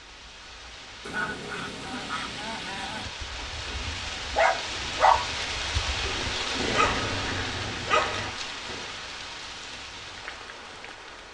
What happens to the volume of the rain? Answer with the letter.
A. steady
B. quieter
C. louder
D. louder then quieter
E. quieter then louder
D.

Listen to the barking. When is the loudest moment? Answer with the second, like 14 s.
5 s.